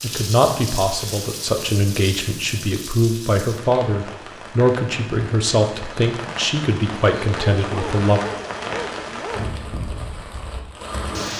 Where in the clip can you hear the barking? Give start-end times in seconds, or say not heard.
7.3-9.6.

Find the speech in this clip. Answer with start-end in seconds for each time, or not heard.
0.0-8.2.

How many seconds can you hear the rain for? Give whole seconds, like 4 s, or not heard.
11 s.